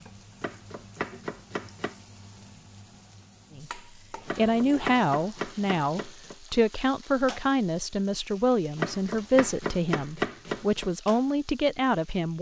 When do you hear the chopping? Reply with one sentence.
The chopping can be heard from 0.4 to 1.9 s, from 4.2 to 6.3 s and from 8.8 to 10.9 s.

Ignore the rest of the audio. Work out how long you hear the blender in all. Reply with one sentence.
You can't hear the blender here.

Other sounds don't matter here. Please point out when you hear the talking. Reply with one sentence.
The talking can be heard from 3.5 to 12.3 s.